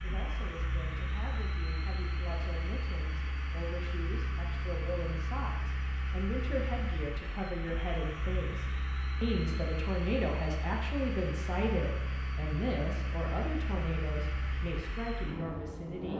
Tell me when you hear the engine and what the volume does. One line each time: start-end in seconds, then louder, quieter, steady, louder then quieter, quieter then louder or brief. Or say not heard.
0.0-16.1 steady.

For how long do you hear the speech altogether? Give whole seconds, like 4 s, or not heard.
16 s.